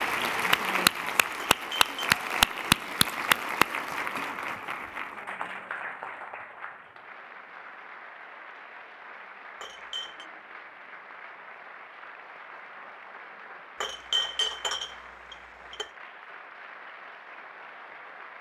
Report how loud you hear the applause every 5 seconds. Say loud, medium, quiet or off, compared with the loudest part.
loud, quiet, quiet, quiet.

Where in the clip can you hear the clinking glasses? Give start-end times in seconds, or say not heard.
1.5-1.9, 9.6-10.2, 13.8-15.9.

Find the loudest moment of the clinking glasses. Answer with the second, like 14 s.
14 s.